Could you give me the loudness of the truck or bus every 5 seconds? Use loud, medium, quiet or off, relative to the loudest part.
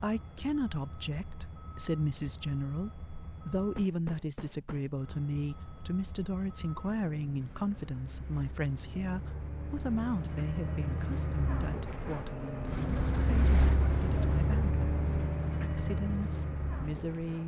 quiet, quiet, loud, loud.